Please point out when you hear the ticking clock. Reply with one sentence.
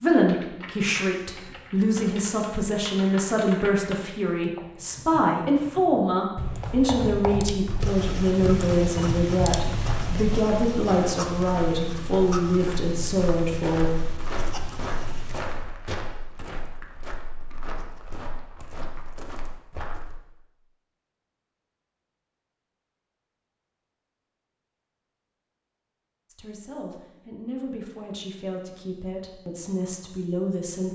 The ticking clock can't be heard in this clip.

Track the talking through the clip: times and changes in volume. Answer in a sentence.
You can hear the talking from 0.0 to 13.9 s, at a steady volume; and from 26.3 to 30.9 s, getting louder.